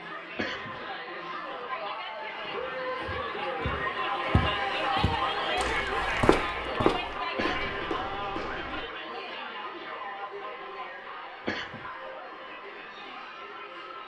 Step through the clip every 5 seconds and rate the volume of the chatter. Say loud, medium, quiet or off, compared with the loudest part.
loud, loud, medium.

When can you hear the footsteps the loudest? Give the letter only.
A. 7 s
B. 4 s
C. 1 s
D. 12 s
A.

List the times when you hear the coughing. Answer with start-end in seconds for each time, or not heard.
0.3-0.8, 7.3-7.8, 11.4-11.9.